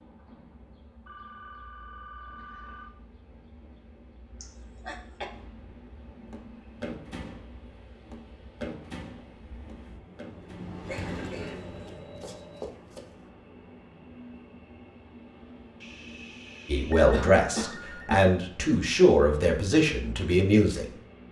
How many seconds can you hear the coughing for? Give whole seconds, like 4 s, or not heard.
3 s.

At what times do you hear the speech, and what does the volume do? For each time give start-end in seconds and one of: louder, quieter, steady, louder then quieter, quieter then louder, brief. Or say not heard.
16.6-20.9 steady.